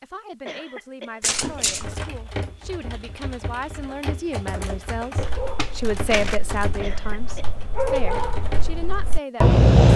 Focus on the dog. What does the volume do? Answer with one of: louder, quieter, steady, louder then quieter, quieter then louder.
louder.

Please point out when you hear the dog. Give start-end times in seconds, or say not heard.
5.2-9.9.